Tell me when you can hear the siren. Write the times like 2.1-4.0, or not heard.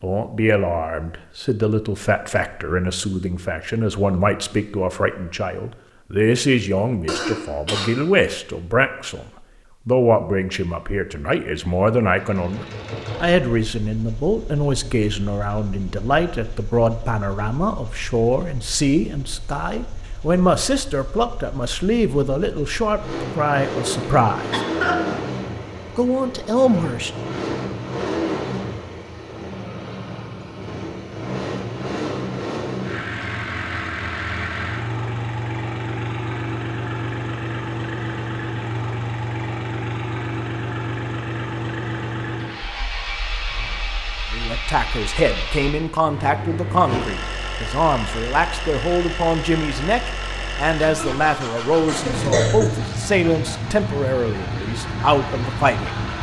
not heard.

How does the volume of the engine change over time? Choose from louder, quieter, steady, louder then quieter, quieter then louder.
louder.